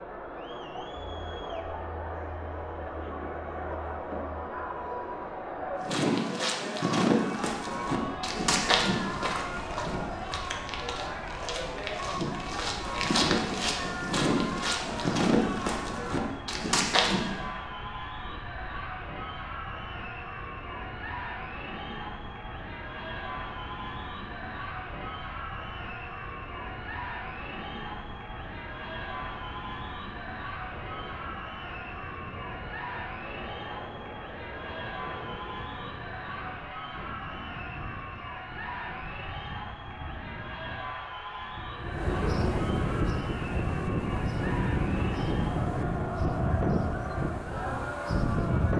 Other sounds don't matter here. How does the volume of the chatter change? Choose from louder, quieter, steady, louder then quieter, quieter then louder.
steady.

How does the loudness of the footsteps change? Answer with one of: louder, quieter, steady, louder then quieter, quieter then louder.
quieter then louder.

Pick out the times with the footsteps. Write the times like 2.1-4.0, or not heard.
5.8-17.4.